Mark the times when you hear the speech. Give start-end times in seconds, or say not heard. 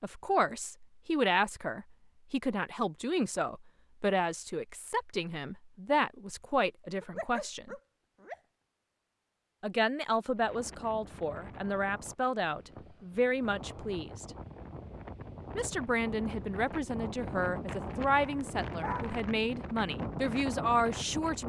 0.0-7.8, 9.6-14.3, 15.6-21.4.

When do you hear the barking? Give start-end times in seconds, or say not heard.
7.0-8.3, 18.2-19.2.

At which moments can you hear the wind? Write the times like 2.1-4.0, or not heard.
10.3-21.4.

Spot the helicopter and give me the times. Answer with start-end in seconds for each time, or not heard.
not heard.